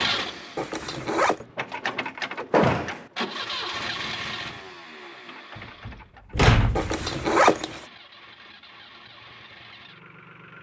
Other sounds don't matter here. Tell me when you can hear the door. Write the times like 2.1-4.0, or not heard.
2.5-3.0, 5.5-7.2.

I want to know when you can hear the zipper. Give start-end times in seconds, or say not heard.
0.6-1.4, 6.8-7.8.